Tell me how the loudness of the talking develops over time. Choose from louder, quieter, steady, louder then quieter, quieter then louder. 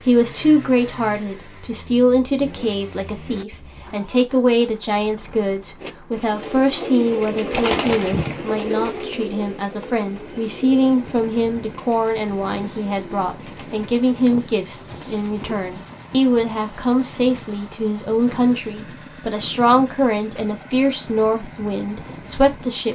steady.